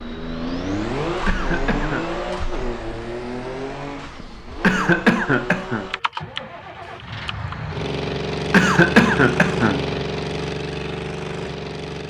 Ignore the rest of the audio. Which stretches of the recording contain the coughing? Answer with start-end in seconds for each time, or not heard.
1.2-2.1, 4.6-5.8, 8.5-9.8.